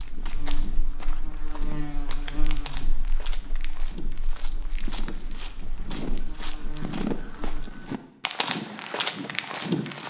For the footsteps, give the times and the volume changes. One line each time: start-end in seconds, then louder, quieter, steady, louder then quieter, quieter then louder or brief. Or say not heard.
0.0-10.0 louder.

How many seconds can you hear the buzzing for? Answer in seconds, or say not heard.
8 s.